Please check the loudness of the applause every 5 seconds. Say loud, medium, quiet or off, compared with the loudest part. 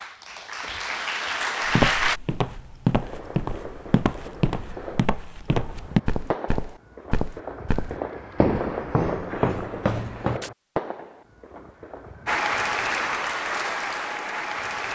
loud, off, loud.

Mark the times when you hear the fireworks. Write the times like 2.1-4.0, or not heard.
2.9-12.4.